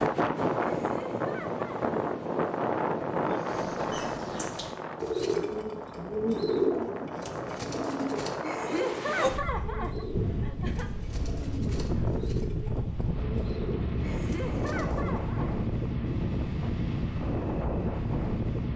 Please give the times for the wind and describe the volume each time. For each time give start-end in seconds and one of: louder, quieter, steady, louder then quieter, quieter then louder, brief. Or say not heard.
0.0-18.7 quieter then louder.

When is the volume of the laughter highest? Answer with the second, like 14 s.
9 s.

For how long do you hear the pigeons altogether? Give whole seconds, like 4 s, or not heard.
12 s.